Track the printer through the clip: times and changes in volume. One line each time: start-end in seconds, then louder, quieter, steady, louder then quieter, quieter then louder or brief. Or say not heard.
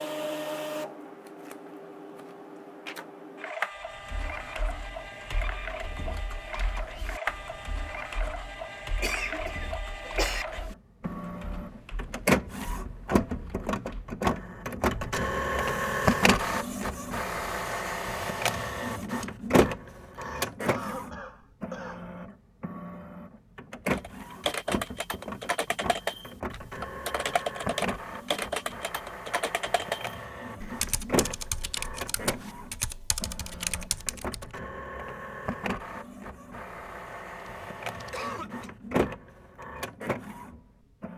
0.0-41.1 louder then quieter.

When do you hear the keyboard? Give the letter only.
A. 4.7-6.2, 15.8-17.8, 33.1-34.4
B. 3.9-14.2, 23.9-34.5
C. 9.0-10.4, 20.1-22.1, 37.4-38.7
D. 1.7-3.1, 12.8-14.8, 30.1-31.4
B.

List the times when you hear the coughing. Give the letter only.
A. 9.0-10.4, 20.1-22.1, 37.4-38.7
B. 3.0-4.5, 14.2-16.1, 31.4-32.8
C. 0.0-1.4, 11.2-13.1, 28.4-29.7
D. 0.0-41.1
A.